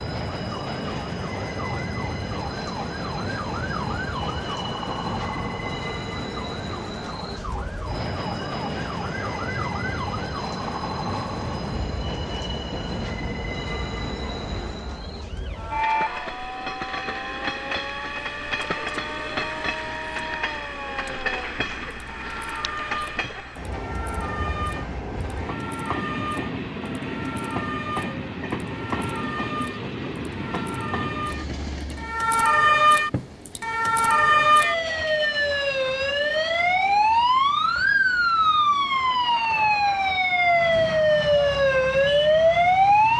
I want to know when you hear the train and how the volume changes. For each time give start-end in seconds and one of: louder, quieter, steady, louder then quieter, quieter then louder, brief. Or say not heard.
0.0-43.1 quieter.